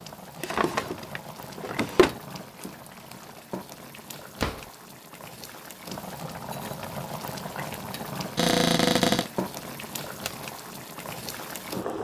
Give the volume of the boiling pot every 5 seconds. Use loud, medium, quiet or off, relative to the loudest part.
medium, loud, loud.